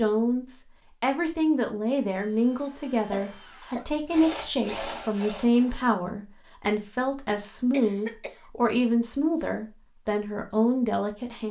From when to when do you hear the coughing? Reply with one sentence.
The coughing can be heard from 3.1 to 3.9 s and from 7.7 to 8.4 s.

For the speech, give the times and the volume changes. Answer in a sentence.
The speech can be heard from 0.0 to 11.4 s, at a steady volume.